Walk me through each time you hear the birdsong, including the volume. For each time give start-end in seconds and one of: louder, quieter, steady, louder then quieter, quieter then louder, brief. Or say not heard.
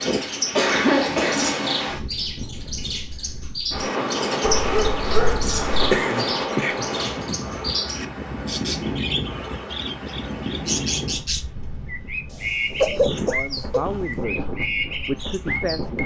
0.0-16.0 steady.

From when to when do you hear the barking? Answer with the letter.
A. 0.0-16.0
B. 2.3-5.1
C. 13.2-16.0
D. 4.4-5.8
D.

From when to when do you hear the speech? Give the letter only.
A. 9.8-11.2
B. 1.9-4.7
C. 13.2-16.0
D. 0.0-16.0
C.